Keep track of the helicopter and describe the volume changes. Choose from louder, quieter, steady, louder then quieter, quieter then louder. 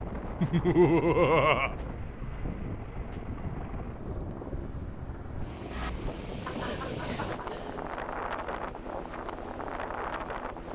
steady.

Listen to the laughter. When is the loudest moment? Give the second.
1 s.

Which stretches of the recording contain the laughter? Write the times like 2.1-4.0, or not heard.
0.4-1.8, 6.5-7.8.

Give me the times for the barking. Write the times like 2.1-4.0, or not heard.
not heard.